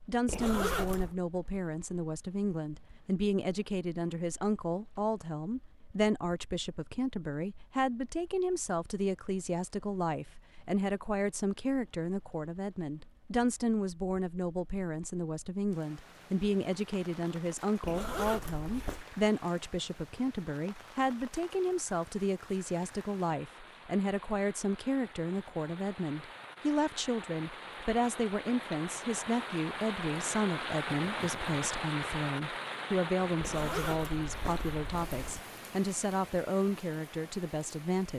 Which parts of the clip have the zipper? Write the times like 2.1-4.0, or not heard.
0.2-1.1, 17.8-19.1, 33.4-35.4.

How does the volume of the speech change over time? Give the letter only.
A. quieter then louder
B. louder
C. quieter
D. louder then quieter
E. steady
E.